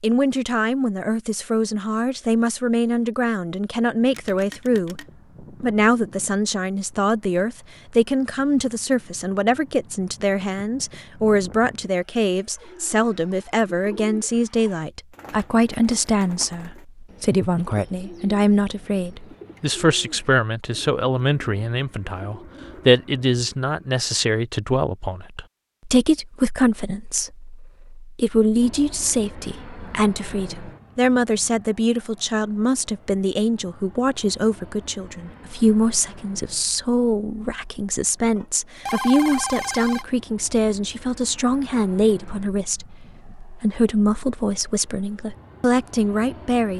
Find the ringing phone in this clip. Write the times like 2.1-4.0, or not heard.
4.1-5.0, 38.4-40.0.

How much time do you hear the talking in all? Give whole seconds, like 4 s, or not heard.
46 s.